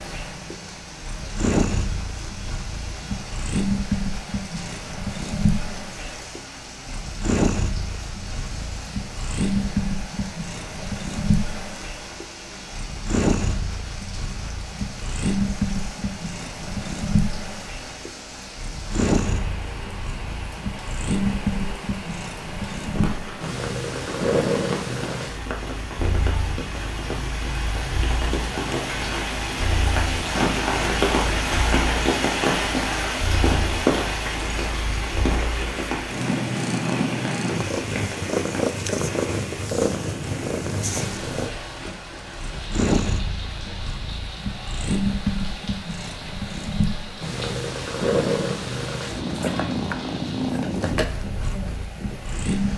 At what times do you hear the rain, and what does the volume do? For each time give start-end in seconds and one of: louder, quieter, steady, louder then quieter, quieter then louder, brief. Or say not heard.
0.0-52.7 louder then quieter.